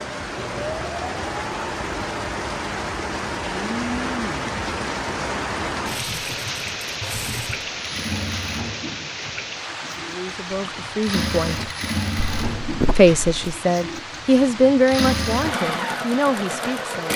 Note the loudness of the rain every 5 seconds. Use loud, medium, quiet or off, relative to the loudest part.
loud, loud, medium, medium.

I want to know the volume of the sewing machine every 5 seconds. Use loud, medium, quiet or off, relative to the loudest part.
medium, medium, medium, loud.